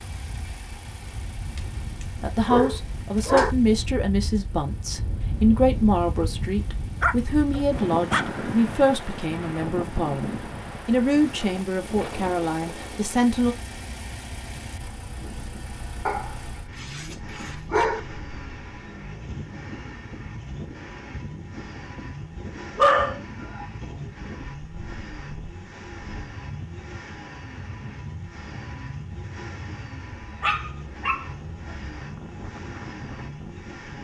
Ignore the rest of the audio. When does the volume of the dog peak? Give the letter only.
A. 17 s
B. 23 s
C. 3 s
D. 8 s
B.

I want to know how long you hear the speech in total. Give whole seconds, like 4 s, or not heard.
11 s.